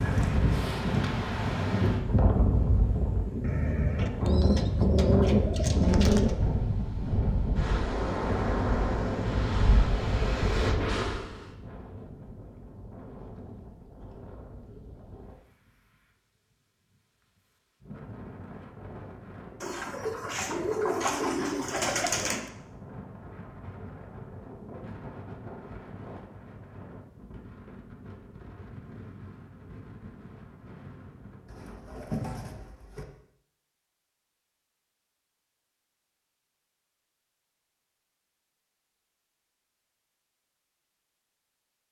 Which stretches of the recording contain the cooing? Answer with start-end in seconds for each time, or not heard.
3.4-6.4, 19.6-22.5, 31.4-33.0.